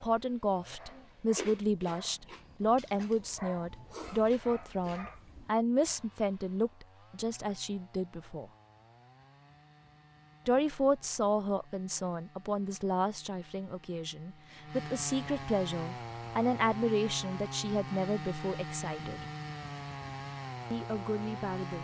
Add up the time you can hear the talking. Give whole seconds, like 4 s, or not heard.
18 s.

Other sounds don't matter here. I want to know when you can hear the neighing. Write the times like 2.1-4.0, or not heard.
not heard.